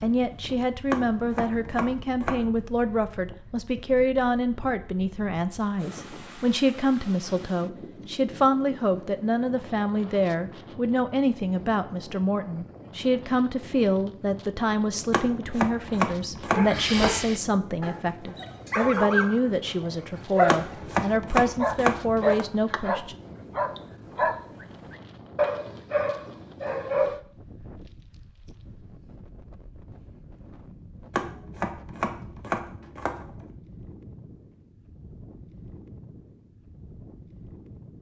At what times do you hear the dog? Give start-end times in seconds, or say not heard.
16.5-27.2.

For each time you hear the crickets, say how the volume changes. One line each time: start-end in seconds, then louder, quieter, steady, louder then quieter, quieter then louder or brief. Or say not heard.
not heard.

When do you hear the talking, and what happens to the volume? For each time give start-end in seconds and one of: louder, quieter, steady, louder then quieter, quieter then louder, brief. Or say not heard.
0.0-23.1 steady.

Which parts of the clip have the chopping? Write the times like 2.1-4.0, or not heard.
0.9-2.5, 15.1-17.1, 20.4-22.4, 31.1-33.5.